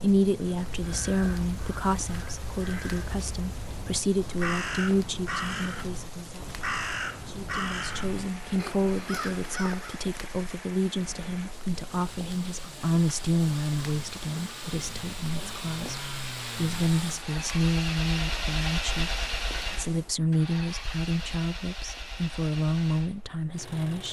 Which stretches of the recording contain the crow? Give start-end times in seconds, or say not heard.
0.6-10.0.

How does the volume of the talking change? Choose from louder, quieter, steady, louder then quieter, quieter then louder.
steady.